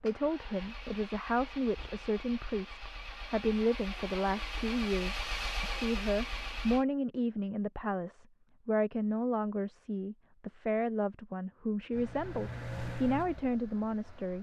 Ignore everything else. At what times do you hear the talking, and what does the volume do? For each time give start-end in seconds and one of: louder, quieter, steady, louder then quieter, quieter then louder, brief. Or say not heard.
0.0-14.3 steady.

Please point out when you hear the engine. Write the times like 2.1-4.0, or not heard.
0.0-6.8, 11.9-14.3.